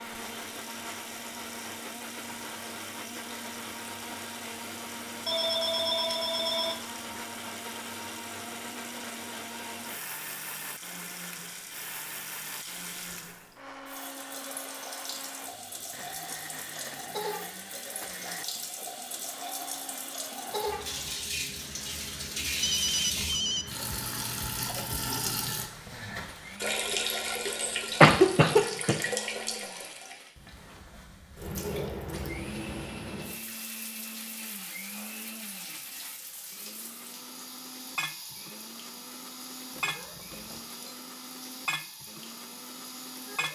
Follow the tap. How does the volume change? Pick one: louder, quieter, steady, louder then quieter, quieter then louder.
louder then quieter.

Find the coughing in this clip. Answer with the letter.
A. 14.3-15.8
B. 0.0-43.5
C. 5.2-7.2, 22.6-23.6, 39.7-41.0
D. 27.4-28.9
D.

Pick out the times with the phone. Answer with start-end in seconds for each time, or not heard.
5.2-7.2, 22.6-23.6, 39.7-41.0.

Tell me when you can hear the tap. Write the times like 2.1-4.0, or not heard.
0.0-43.5.